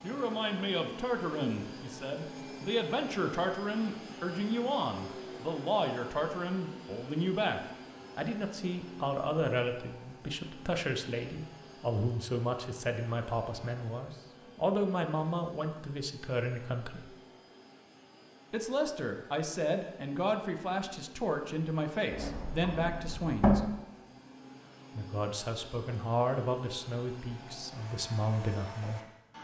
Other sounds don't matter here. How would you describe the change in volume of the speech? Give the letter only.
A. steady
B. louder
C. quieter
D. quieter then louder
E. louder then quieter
A.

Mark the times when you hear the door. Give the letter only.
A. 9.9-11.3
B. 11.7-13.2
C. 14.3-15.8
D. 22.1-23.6
D.